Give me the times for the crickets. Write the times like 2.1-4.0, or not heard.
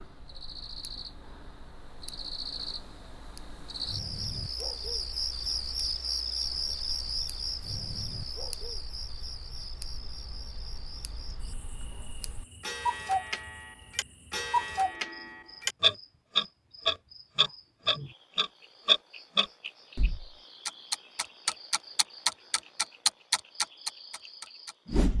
0.0-25.1.